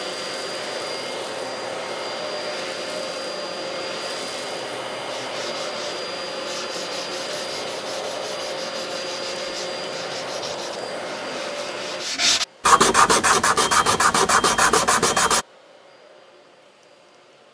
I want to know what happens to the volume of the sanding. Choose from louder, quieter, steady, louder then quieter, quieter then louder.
louder.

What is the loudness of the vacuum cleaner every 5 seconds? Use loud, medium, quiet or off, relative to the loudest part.
loud, loud, loud, quiet.